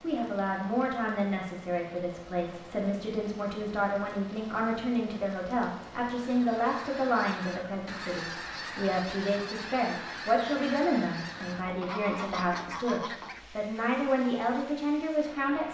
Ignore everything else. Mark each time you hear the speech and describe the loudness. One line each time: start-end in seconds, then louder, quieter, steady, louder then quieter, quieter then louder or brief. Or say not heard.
0.0-15.6 steady.